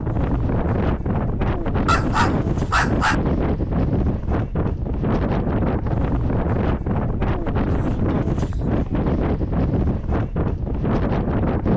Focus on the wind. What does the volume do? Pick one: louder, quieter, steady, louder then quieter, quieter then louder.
steady.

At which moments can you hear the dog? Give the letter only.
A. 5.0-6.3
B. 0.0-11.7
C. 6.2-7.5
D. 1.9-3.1
D.